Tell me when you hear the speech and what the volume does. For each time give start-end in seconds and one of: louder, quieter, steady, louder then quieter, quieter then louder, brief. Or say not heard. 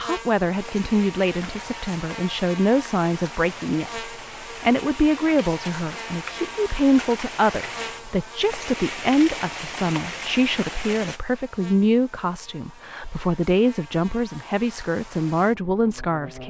0.0-16.4 steady.